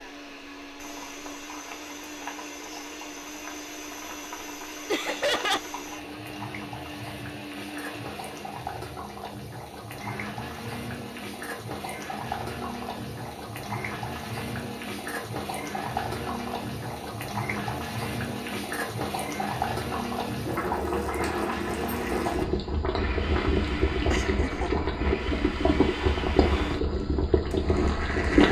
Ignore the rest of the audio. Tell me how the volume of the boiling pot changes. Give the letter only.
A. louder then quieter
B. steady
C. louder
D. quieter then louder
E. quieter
C.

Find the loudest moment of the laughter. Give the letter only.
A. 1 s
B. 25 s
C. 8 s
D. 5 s
D.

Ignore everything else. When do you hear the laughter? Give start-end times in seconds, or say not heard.
4.8-5.6, 24.1-24.7.